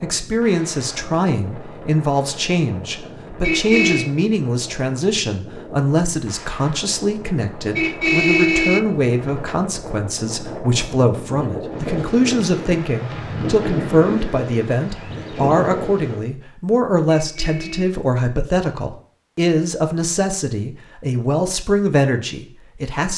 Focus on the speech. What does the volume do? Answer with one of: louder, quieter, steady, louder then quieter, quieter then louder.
steady.